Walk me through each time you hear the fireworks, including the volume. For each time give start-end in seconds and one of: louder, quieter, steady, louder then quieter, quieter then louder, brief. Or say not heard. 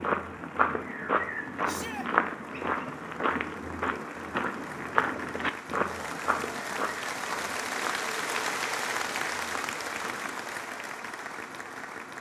not heard.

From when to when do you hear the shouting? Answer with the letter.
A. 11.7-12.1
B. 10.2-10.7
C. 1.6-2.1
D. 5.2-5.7
C.